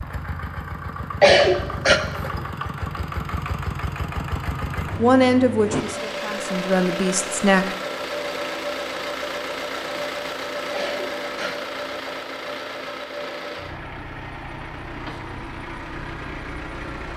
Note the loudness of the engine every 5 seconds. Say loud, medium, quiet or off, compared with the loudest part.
loud, loud, loud, medium.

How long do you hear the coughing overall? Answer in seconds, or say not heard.
2 s.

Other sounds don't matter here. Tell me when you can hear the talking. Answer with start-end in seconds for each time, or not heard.
5.0-7.7.